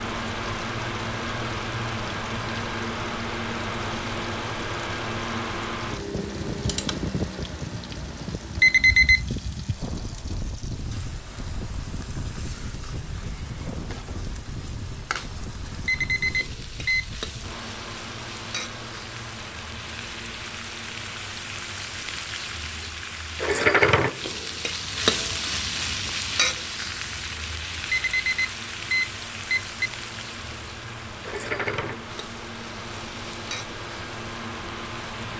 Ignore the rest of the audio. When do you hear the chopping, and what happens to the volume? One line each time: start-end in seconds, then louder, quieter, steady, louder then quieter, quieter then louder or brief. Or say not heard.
not heard.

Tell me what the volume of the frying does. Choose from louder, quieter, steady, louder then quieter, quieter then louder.
louder then quieter.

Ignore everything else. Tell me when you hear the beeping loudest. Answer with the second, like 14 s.
9 s.